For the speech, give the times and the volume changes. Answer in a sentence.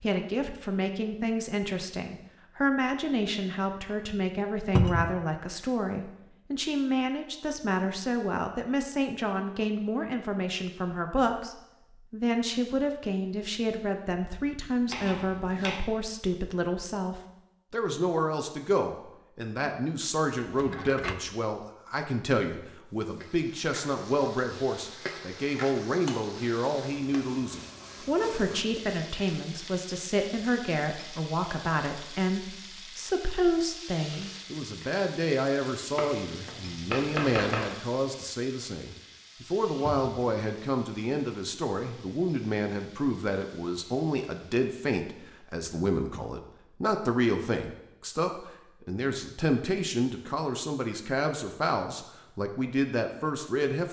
You can hear the speech from 0.0 to 53.8 s, at a steady volume.